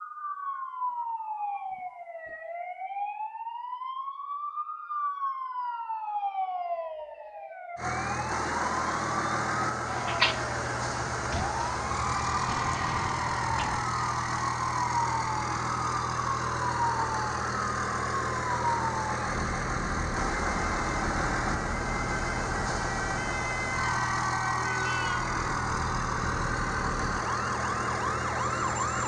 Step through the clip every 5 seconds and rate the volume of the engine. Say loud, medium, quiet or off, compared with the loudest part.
off, loud, loud, loud, loud, loud.